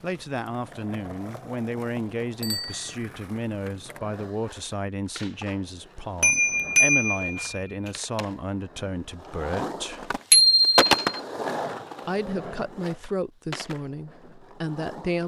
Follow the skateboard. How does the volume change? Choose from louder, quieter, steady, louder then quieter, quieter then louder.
louder then quieter.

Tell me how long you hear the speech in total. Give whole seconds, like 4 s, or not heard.
13 s.